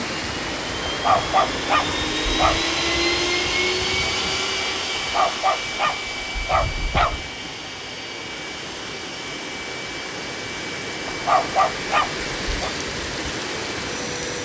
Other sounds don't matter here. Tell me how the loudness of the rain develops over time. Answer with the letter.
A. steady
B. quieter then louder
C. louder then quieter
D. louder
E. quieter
B.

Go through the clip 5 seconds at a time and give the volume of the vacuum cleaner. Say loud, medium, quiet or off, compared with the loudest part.
loud, medium, medium.